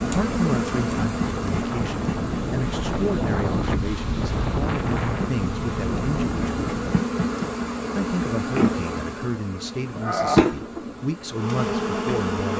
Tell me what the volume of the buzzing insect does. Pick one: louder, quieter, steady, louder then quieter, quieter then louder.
quieter then louder.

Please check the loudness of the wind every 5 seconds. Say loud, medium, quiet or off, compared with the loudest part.
loud, loud, off.